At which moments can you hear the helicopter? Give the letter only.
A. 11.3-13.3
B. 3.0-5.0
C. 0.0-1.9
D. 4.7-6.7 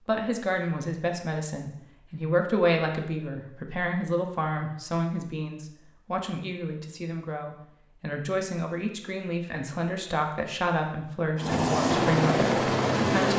A.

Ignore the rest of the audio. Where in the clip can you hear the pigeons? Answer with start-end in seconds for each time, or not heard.
not heard.